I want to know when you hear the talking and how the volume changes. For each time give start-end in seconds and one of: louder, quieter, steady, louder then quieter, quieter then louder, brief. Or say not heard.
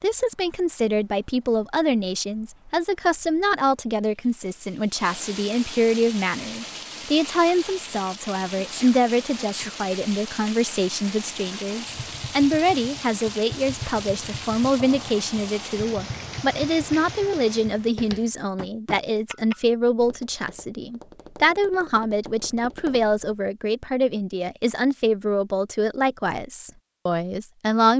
0.0-27.9 steady.